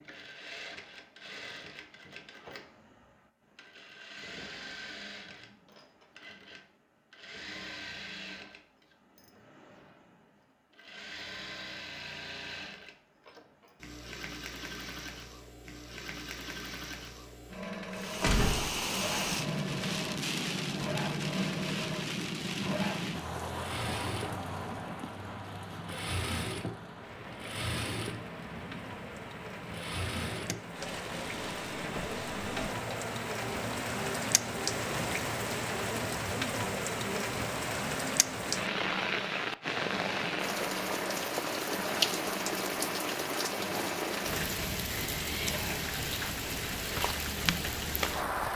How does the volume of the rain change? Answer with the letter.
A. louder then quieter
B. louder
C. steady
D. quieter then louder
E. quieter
D.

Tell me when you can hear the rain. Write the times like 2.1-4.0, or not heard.
17.9-48.5.